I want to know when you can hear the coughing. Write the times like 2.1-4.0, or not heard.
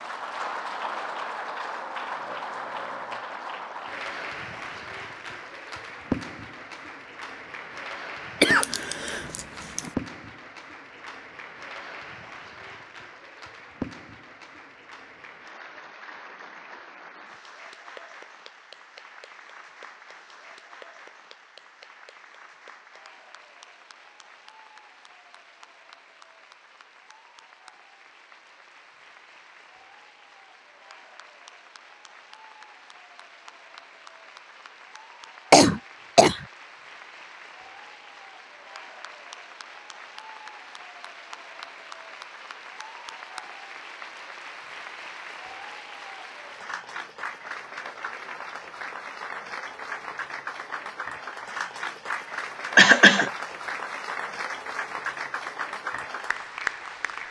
8.4-9.9, 35.5-36.5, 52.8-53.3.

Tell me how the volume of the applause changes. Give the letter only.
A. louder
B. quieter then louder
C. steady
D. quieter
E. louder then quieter
B.